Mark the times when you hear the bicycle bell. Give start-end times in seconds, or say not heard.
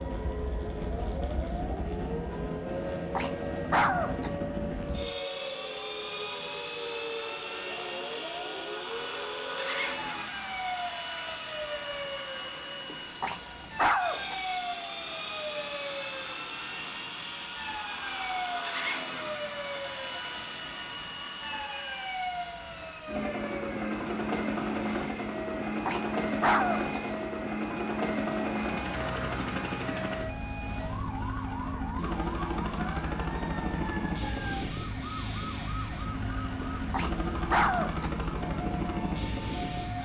not heard.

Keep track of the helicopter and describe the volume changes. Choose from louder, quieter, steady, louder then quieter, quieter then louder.
steady.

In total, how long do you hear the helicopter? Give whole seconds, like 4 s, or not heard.
40 s.